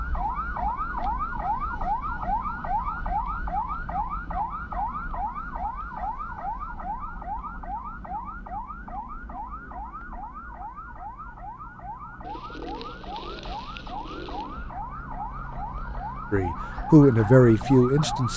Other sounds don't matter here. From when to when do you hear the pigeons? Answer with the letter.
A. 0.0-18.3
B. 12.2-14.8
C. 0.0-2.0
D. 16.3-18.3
B.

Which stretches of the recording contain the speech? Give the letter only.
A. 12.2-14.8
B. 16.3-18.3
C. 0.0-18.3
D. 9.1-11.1
B.